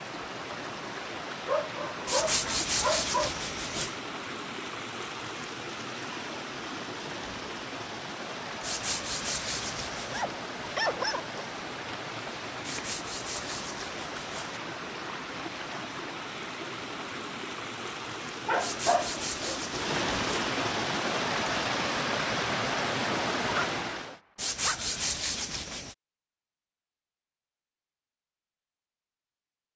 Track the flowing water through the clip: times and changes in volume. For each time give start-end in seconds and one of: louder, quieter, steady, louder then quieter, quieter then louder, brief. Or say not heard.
0.0-24.2 louder.